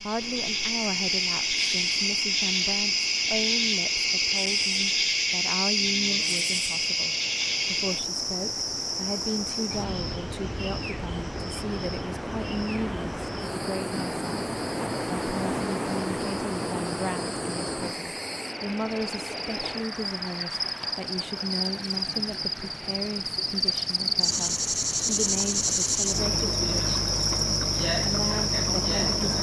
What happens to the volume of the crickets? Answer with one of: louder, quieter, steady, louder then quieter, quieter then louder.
quieter then louder.